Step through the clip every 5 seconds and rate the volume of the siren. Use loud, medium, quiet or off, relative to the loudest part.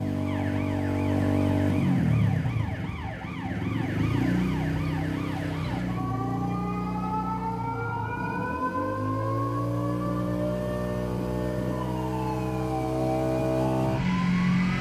medium, loud, loud.